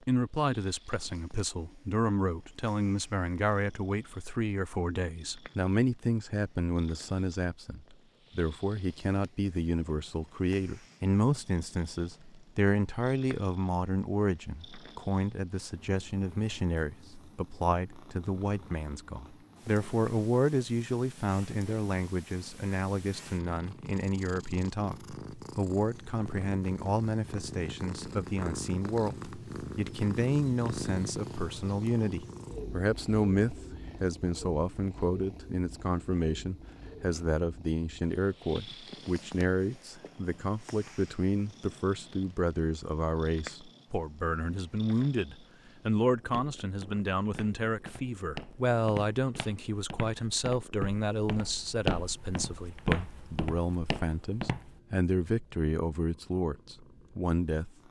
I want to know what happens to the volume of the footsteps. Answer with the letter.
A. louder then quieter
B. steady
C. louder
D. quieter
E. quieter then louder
C.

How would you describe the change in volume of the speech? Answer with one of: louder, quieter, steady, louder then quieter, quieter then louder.
steady.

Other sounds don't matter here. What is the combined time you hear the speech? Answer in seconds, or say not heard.
58 s.